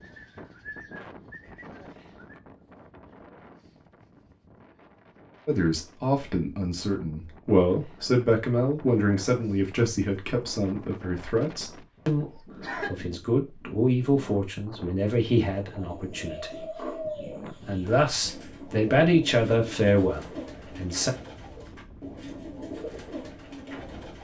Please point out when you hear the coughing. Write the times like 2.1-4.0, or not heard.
12.2-12.9.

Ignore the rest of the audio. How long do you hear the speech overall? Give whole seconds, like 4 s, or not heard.
15 s.